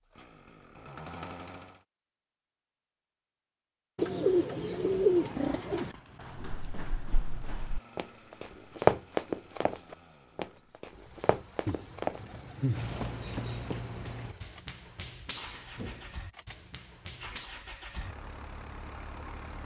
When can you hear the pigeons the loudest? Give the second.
5 s.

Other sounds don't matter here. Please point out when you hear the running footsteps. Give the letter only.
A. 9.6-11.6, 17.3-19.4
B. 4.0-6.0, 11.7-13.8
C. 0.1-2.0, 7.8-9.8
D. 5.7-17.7
D.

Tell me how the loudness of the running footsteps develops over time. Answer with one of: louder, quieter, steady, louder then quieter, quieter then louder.
louder then quieter.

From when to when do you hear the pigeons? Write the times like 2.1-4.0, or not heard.
4.0-6.0, 11.7-13.8.